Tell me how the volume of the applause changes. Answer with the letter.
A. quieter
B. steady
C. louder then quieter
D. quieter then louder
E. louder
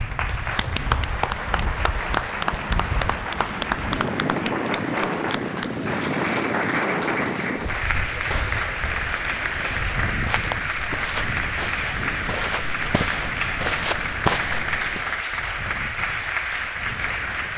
B.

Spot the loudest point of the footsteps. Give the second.
14 s.